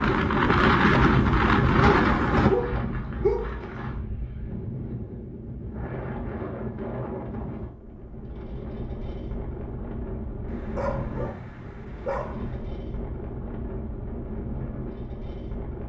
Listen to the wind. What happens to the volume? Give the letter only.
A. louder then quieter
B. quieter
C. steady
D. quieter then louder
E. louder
B.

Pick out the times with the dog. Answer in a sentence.
The dog can be heard from 1.0 to 3.6 s and from 10.4 to 12.6 s.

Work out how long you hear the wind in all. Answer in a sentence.
The wind can be heard for 16 seconds in total.